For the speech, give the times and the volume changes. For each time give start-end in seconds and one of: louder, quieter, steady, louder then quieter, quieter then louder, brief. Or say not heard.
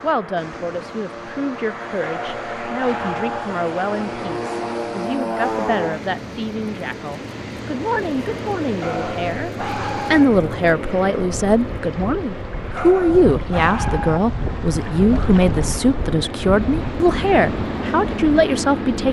0.0-19.0 louder.